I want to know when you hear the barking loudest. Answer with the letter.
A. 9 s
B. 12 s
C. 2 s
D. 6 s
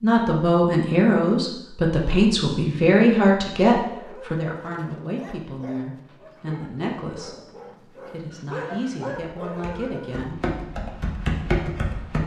A.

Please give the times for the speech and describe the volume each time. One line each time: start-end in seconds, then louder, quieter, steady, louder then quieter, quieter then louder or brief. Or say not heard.
0.0-10.4 quieter.